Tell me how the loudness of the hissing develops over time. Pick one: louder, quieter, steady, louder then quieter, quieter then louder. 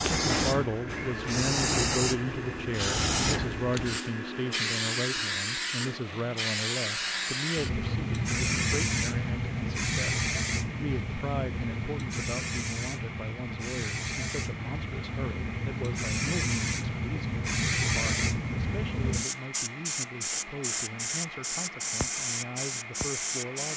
steady.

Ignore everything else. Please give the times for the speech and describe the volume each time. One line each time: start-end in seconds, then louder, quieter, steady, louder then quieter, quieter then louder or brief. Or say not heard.
0.1-23.7 quieter.